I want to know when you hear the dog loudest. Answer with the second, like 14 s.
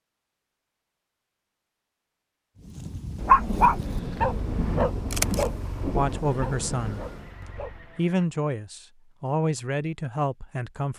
3 s.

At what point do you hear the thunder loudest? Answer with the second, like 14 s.
5 s.